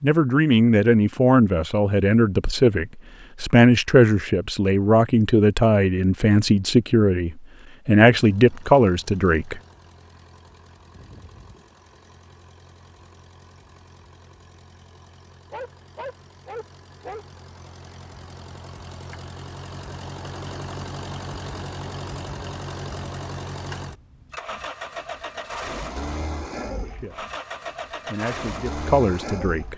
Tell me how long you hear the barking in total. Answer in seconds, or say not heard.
2 s.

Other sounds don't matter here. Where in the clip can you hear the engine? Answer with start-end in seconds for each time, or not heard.
8.2-29.7.